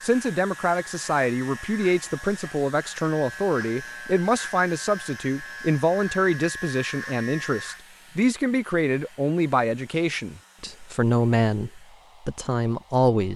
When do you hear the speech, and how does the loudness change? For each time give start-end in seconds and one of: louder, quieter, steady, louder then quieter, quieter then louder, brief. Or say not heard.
0.0-13.3 steady.